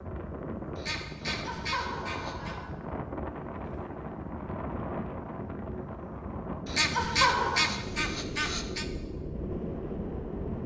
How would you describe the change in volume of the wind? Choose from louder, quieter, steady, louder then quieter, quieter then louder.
steady.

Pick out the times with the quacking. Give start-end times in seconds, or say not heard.
0.8-2.5, 6.7-8.8.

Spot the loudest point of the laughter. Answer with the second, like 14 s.
7 s.